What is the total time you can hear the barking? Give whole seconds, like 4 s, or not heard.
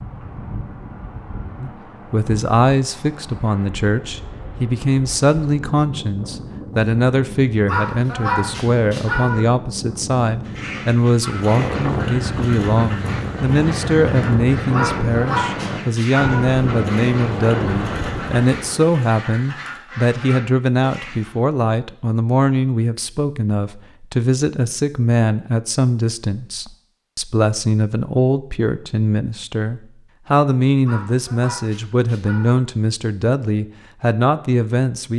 5 s.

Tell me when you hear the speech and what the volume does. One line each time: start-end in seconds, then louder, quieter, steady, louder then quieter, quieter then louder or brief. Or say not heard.
1.6-35.1 steady.